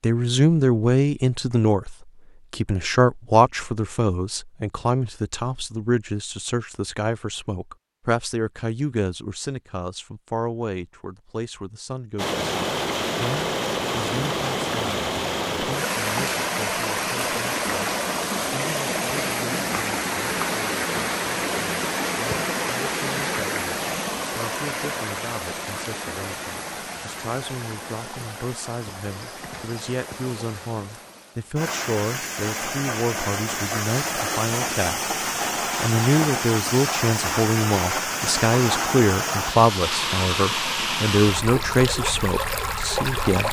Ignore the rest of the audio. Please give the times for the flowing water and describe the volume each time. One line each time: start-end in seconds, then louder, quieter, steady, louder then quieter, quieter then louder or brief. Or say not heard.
12.2-43.4 quieter then louder.